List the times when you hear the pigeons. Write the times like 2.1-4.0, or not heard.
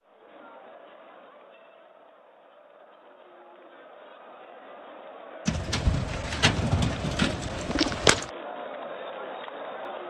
5.5-8.3.